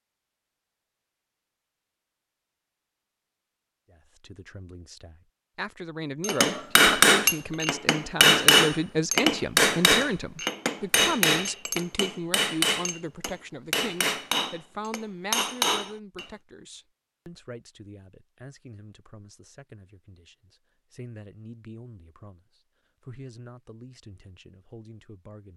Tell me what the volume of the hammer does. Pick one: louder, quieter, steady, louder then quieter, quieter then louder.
quieter.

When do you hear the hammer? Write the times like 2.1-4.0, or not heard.
6.2-16.3.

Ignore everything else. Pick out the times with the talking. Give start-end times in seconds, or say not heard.
3.9-25.5.